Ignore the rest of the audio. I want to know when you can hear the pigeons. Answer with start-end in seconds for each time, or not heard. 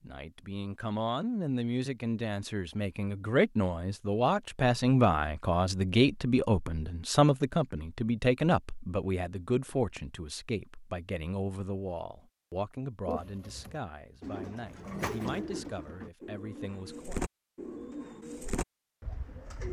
13.1-19.6.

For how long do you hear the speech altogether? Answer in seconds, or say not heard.
17 s.